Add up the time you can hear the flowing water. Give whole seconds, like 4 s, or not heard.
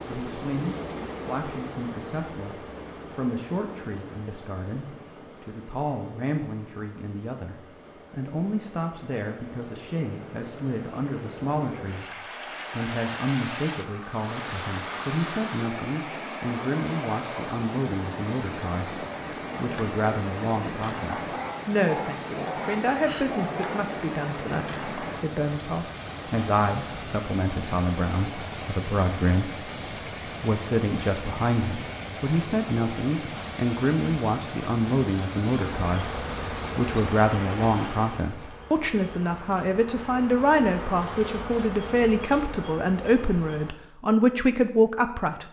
38 s.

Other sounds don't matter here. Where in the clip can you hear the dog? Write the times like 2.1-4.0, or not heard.
21.1-23.9.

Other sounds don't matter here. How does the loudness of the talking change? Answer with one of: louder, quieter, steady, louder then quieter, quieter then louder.
louder.